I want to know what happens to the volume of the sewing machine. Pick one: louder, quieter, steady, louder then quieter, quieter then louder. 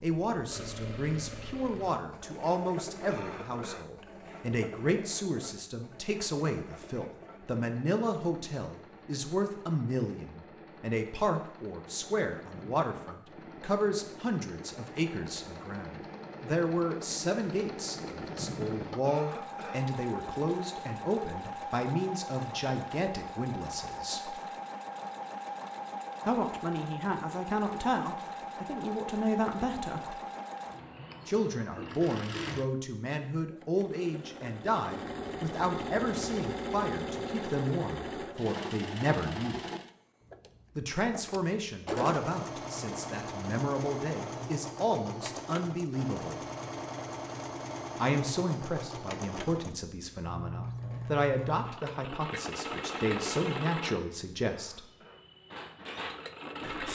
louder.